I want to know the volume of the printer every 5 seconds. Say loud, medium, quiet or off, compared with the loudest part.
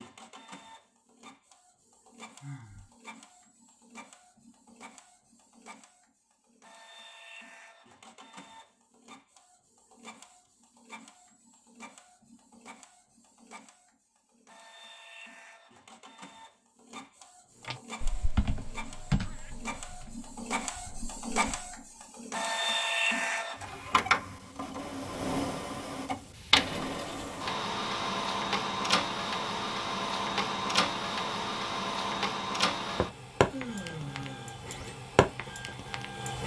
quiet, quiet, quiet, quiet, loud, loud, loud, loud.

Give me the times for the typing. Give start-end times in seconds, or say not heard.
17.6-21.8.